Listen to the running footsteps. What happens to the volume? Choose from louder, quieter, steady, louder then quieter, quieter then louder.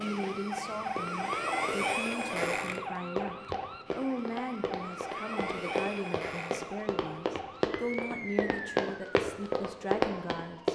louder.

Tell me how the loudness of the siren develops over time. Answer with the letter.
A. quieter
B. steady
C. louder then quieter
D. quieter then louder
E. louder
A.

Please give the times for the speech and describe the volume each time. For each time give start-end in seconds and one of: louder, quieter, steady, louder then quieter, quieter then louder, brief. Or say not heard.
0.0-10.6 steady.